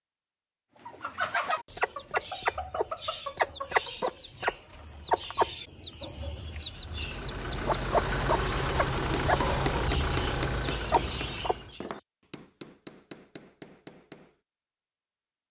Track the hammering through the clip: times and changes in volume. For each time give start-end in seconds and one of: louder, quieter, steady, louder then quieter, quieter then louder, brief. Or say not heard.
9.2-14.4 quieter.